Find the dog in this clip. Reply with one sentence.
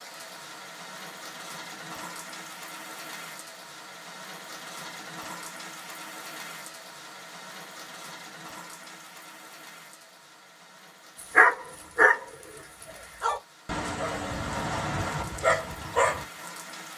You can hear the dog from 11.2 to 12.6 s and from 13.2 to 16.2 s.